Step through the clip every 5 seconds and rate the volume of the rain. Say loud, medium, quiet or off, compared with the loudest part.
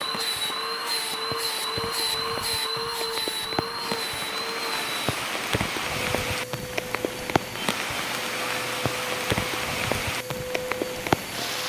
medium, loud, loud.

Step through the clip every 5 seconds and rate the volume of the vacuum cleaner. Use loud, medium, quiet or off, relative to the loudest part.
loud, medium, medium.